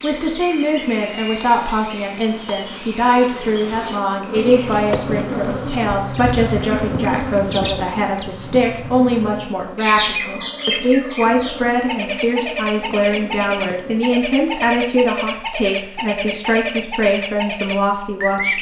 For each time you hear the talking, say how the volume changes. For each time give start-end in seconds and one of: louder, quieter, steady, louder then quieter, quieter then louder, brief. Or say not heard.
0.0-18.5 steady.